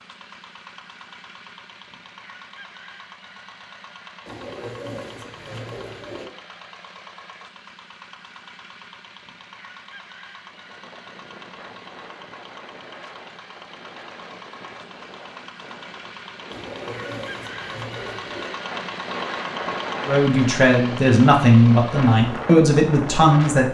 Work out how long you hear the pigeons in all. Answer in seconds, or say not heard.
4 s.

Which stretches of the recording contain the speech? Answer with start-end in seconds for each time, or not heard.
20.1-23.6.